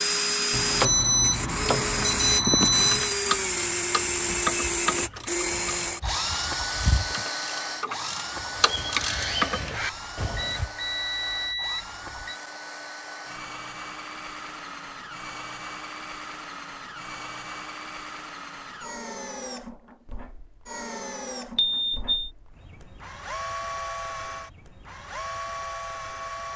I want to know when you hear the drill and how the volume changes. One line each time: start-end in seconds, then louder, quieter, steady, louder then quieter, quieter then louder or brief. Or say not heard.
0.0-26.5 quieter.